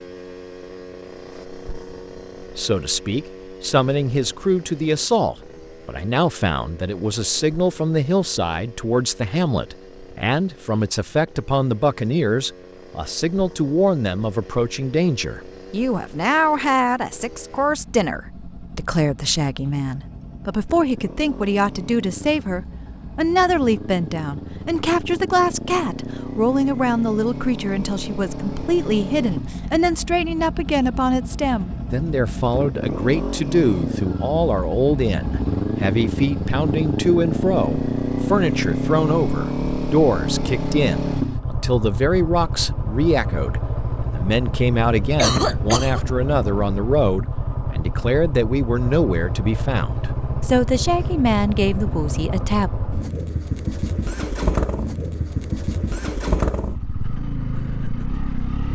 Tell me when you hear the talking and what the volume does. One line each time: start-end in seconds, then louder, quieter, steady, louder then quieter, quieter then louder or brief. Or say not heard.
2.5-52.7 steady.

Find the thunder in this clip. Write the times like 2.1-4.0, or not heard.
not heard.